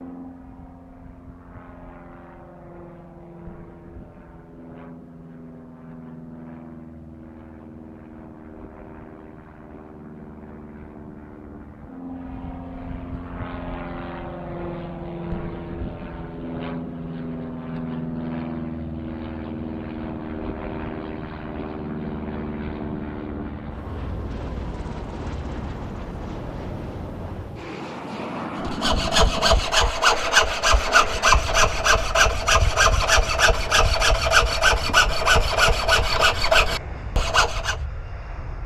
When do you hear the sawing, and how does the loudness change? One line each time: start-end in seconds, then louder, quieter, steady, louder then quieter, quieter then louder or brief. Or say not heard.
28.6-37.8 steady.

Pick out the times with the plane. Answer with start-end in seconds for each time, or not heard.
0.0-38.6.